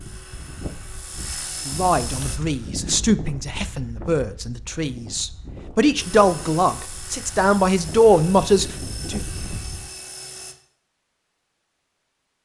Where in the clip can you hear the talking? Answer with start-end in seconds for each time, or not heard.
1.6-9.2.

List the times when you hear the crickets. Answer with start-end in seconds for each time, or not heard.
not heard.